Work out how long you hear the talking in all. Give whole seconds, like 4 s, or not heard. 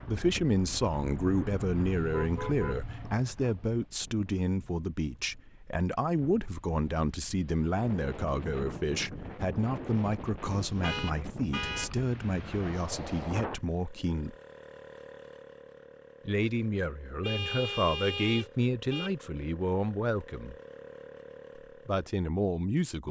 20 s.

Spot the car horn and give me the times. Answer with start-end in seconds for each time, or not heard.
1.1-3.2, 10.5-11.9, 17.2-19.1.